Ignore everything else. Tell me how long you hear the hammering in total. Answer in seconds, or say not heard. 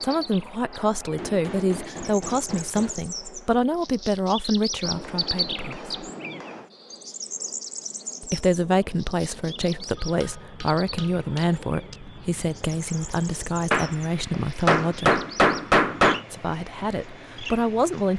8 s.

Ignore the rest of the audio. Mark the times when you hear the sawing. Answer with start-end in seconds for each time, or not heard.
not heard.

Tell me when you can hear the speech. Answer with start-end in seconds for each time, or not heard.
0.0-5.9, 8.2-15.2, 16.3-18.1.